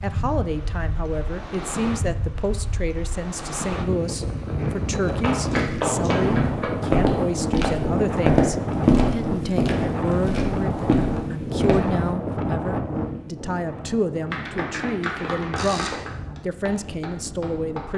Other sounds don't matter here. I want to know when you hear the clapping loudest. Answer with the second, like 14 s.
6 s.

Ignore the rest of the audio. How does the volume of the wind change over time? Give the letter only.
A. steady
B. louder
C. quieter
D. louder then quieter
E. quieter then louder
D.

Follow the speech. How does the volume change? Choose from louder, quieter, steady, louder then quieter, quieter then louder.
steady.